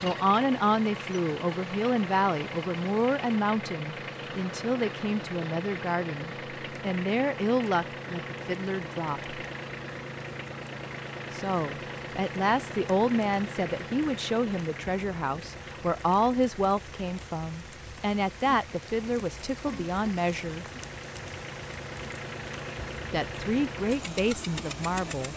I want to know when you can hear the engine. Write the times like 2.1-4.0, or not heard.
0.0-25.3.